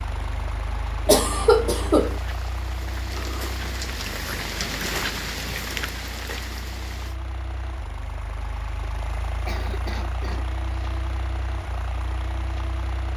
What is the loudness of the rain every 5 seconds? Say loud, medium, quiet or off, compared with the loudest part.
loud, loud, off.